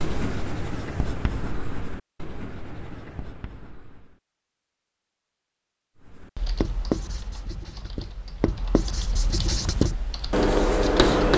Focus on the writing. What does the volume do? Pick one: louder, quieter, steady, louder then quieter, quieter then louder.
quieter then louder.